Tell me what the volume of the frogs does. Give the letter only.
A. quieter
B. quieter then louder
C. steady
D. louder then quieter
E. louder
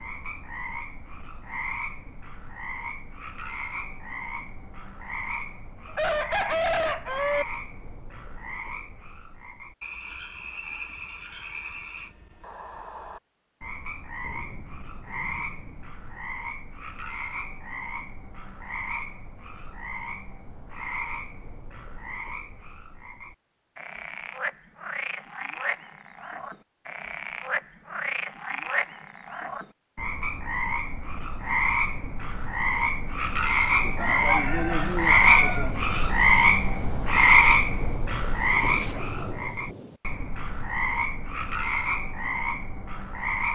E.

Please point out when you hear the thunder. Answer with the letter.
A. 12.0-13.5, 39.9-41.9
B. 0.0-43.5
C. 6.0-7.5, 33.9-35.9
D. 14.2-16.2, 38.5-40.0
D.